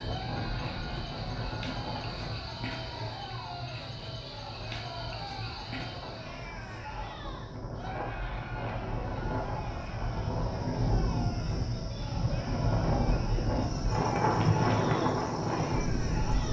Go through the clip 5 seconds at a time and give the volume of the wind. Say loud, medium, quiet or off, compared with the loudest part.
medium, medium, loud, loud.